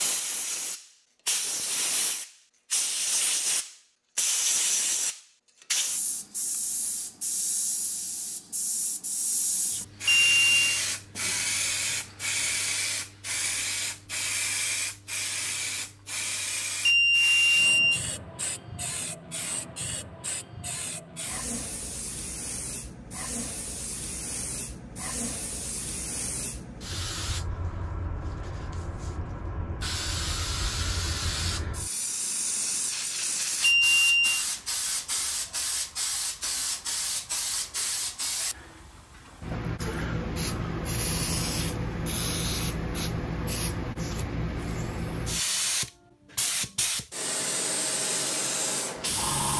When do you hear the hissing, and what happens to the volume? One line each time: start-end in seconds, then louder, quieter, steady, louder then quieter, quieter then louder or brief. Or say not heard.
0.0-49.5 quieter then louder.